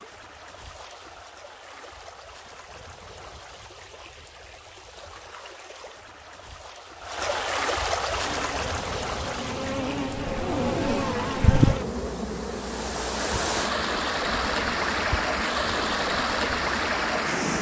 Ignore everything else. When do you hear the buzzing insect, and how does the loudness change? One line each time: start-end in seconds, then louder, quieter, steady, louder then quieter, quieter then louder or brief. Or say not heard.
8.1-17.3 louder then quieter.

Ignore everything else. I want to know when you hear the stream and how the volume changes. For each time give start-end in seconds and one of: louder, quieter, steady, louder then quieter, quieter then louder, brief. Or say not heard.
0.0-17.5 louder.